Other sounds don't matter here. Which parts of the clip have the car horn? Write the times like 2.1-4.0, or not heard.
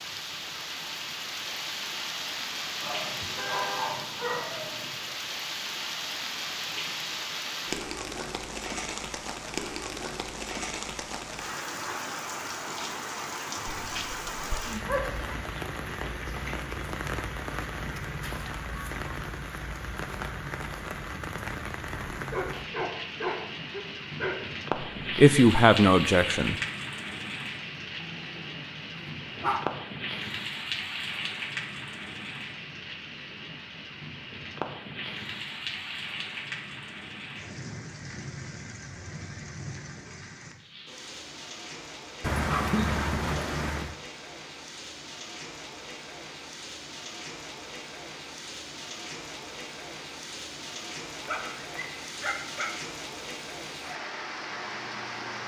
3.1-4.1.